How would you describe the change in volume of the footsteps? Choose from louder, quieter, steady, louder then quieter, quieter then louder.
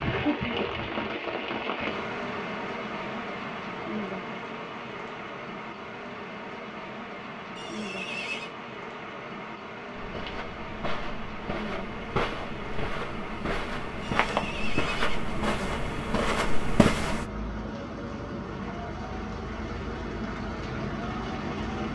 louder.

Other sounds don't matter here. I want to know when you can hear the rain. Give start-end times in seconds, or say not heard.
0.0-21.9.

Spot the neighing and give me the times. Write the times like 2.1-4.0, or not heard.
7.5-8.6, 14.0-15.3.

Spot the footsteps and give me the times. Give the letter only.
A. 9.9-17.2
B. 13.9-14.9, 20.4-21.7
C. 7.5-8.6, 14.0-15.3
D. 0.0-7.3
A.